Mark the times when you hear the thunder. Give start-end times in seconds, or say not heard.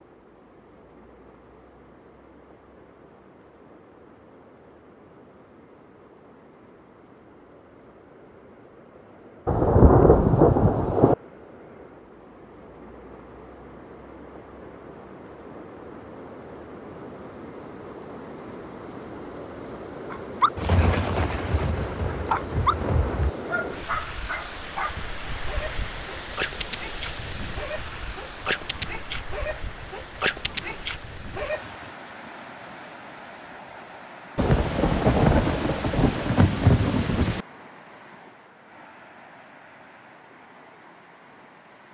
9.4-11.2, 20.6-23.3, 34.4-37.5.